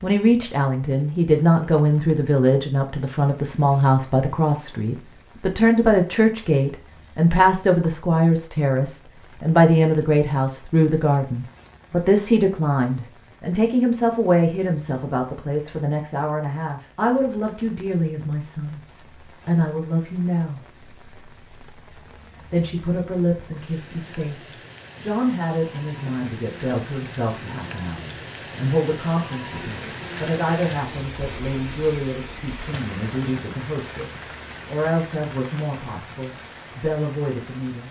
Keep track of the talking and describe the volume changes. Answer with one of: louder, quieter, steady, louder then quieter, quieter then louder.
quieter.